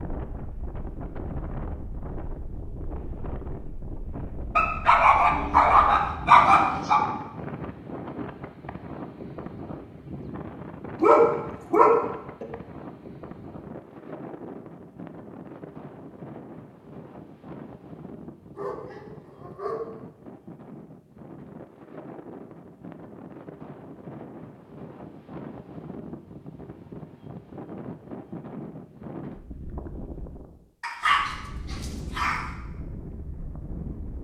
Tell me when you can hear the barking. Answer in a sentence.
You can hear the barking from 4.5 to 7.0 s, from 11.0 to 12.4 s, from 18.6 to 19.9 s and from 30.8 to 32.5 s.